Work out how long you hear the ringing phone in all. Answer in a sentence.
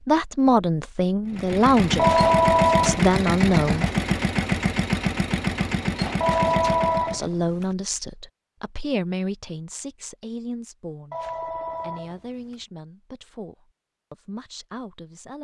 The ringing phone can be heard for 4 seconds in total.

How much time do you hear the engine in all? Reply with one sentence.
You can hear the engine for 6 seconds altogether.